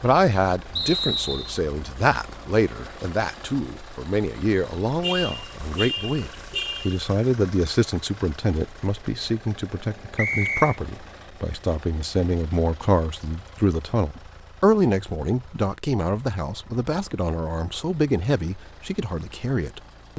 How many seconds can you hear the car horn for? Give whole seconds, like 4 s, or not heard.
2 s.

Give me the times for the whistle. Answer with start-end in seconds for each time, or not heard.
0.8-1.6, 10.2-10.8.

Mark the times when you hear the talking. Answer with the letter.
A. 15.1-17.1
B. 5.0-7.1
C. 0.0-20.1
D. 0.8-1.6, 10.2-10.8
C.